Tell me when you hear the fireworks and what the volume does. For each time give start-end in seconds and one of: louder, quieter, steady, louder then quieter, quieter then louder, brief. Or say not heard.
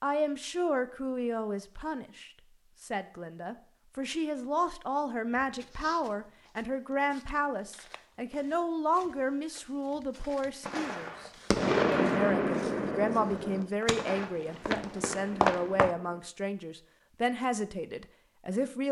10.7-16.2 quieter.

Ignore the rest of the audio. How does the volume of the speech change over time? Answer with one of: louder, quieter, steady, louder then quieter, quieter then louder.
steady.